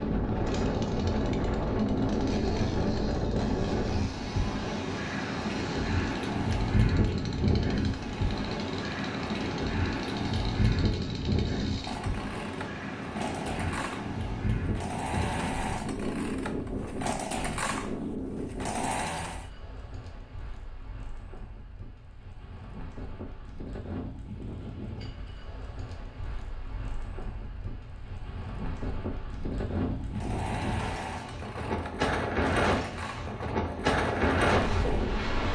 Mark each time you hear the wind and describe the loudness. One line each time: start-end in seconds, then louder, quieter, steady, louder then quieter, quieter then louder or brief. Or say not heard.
0.0-35.5 quieter then louder.